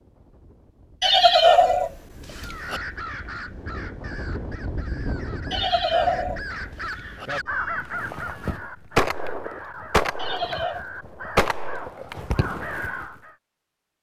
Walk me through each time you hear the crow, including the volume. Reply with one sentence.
The crow can be heard from 2.4 to 13.3 s, getting louder.